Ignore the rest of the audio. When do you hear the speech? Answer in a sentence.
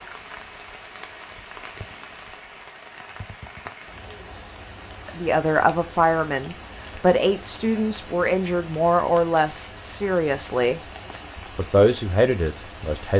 You can hear the speech from 5.0 to 10.8 s and from 11.6 to 13.1 s.